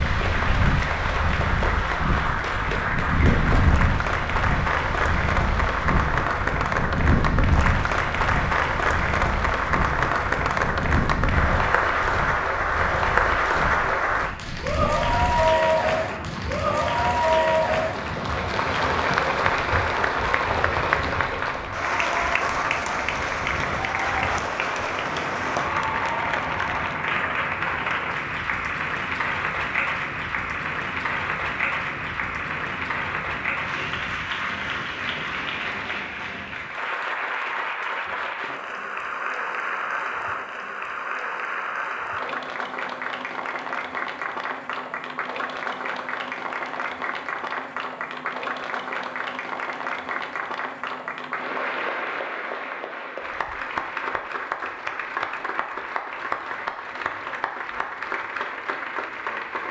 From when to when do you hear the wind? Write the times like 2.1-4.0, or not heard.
0.0-36.8.